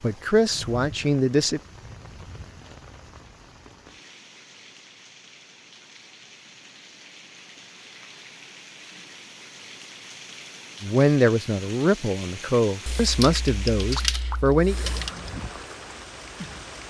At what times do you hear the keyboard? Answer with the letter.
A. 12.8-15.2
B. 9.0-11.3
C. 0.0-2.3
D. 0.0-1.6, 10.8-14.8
A.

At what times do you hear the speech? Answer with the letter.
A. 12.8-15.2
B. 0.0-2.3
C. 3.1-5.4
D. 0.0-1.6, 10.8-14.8
D.